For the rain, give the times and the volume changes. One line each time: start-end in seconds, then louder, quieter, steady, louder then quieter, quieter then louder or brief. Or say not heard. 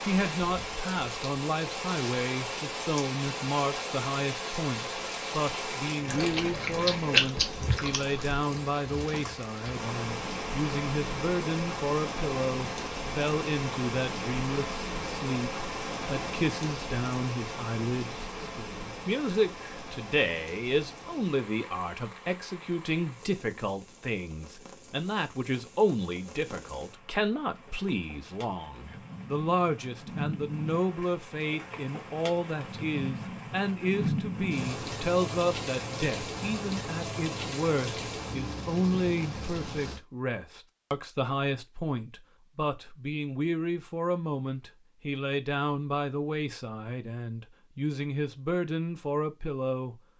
0.0-40.0 quieter then louder.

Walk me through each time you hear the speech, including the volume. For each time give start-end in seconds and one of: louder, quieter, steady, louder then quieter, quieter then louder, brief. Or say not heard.
0.1-50.0 steady.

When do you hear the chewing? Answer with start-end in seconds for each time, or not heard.
6.0-8.4.